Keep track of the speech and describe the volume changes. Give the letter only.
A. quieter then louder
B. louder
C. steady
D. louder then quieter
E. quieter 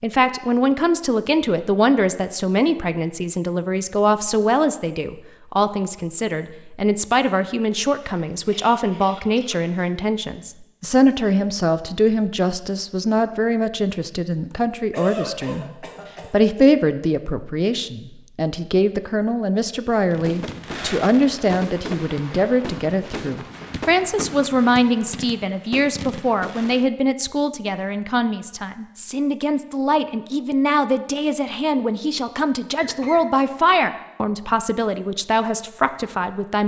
C.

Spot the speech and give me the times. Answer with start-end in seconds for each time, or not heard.
0.0-36.6.